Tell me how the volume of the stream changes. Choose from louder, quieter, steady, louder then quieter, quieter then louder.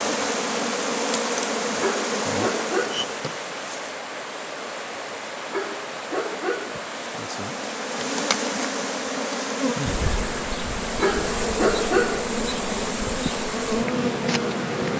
steady.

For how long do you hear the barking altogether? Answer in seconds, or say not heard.
4 s.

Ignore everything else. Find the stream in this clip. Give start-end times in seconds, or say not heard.
0.1-14.9.